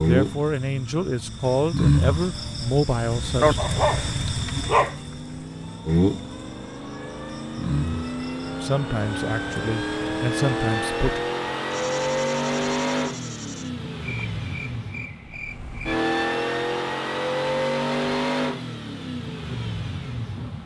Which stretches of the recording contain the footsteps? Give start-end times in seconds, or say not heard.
not heard.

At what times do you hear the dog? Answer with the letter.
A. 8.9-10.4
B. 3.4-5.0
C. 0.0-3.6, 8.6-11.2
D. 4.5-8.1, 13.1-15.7
B.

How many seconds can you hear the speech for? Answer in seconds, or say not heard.
6 s.